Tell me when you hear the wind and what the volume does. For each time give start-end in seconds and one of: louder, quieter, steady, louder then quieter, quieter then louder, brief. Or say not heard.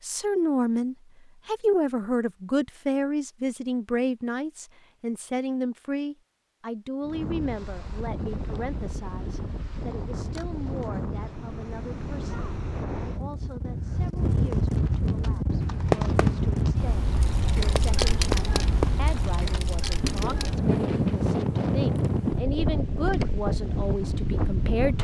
7.0-25.0 louder.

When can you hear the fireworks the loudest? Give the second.
16 s.